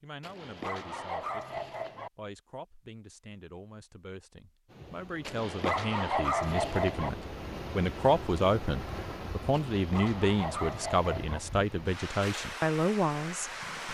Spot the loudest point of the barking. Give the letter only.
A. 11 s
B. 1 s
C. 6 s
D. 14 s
C.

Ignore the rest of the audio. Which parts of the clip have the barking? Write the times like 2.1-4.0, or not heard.
0.2-2.1, 5.2-7.1, 9.5-11.4.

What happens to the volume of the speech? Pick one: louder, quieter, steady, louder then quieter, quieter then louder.
louder.